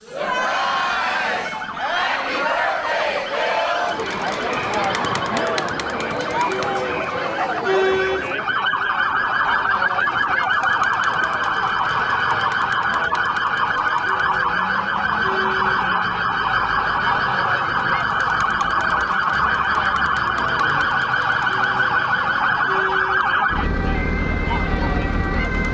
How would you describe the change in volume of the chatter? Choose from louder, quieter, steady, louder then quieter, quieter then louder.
quieter.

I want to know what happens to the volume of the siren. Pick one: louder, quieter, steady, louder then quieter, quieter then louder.
louder.